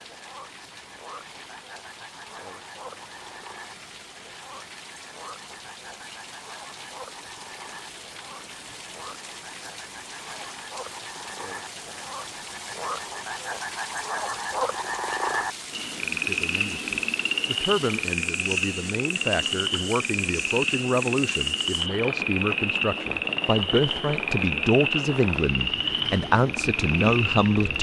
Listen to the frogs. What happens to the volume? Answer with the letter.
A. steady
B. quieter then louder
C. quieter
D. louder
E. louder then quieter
D.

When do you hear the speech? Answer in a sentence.
You can hear the speech from 16.1 to 27.7 s.